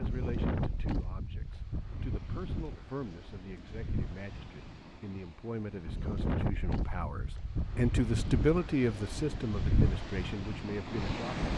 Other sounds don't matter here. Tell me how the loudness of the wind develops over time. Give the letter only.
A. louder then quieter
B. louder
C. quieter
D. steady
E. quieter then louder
E.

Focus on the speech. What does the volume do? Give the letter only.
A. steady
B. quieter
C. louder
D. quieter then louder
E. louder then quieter
E.